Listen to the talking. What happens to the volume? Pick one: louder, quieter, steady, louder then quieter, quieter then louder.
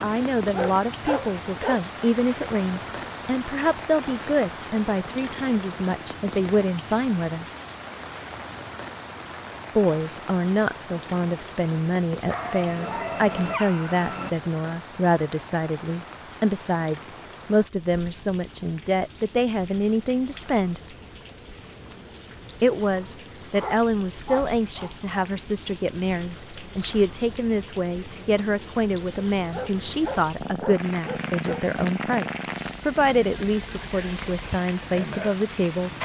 steady.